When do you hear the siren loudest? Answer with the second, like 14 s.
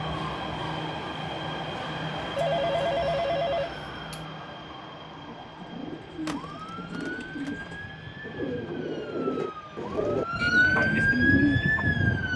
11 s.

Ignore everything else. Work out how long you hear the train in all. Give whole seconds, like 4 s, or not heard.
12 s.